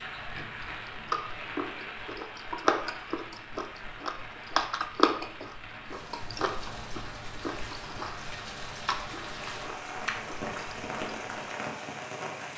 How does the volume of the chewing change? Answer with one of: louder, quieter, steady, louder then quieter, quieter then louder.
louder then quieter.